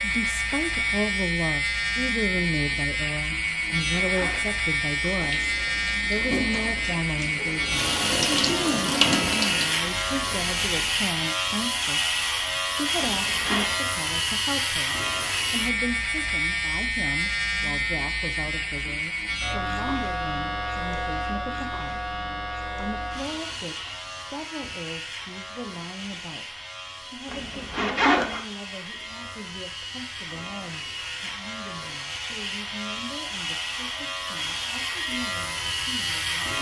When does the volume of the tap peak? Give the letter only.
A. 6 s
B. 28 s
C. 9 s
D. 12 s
C.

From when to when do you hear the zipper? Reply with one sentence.
The zipper can be heard from 3.5 to 4.5 s, from 13.0 to 13.8 s and from 27.2 to 28.4 s.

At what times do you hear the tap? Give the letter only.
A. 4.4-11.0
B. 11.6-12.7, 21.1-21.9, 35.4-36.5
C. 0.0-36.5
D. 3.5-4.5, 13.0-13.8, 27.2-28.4
A.